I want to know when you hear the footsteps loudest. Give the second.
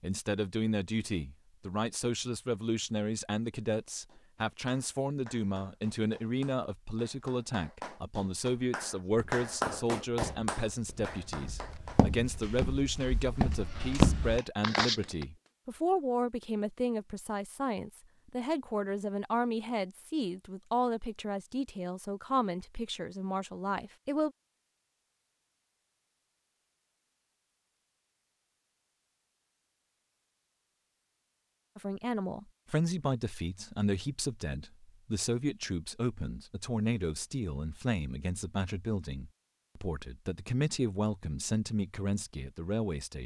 14 s.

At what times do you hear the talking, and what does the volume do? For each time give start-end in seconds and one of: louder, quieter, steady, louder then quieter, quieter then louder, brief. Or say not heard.
0.0-24.3 steady
31.8-43.2 steady.